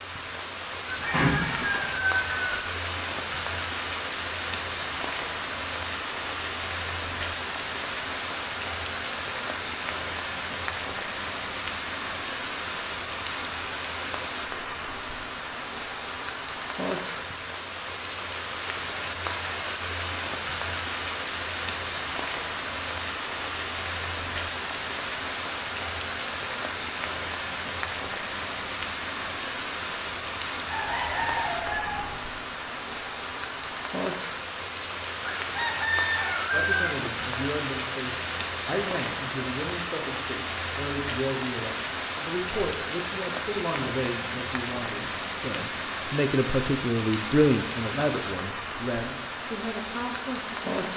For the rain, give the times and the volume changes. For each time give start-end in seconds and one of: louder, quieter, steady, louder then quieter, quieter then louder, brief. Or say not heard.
0.0-50.9 steady.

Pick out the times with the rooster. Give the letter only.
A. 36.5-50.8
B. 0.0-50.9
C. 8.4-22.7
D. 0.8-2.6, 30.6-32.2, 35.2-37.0
D.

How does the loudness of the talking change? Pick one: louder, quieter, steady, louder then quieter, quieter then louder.
louder then quieter.